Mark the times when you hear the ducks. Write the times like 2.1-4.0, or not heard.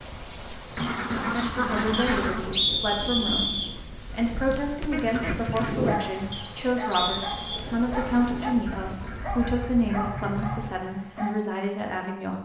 0.8-2.5, 4.9-6.0, 8.7-10.7.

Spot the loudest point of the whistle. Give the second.
3 s.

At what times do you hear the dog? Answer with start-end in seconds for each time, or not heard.
5.8-11.3.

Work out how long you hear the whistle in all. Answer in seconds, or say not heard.
3 s.